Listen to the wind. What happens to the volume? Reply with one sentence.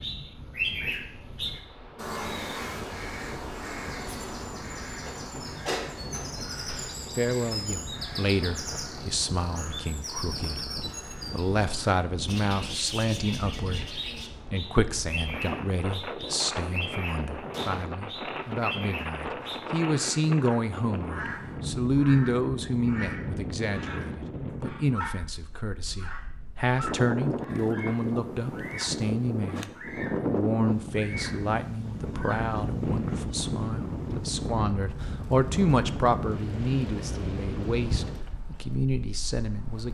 The volume of the wind goes up.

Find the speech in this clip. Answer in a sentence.
You can hear the speech from 7.2 to 39.8 s.